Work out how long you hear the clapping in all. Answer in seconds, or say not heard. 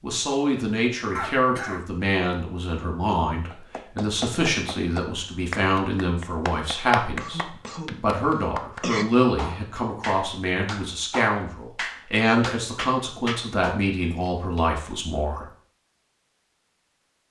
10 s.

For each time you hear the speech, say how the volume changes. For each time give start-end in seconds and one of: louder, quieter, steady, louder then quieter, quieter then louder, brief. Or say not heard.
0.0-15.4 steady.